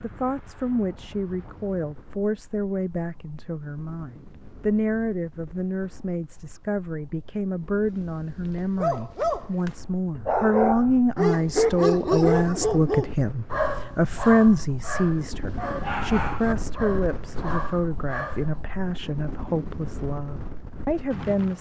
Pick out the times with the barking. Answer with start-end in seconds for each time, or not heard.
7.8-18.6.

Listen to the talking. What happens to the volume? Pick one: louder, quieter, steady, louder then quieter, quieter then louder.
louder then quieter.